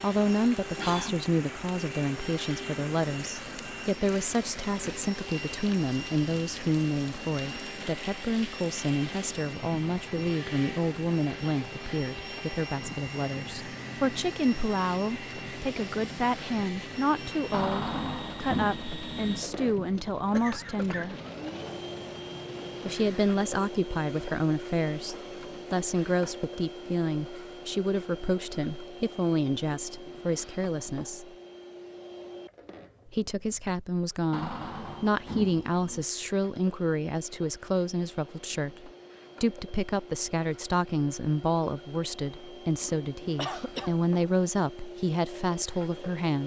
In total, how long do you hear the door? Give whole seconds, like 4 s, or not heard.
3 s.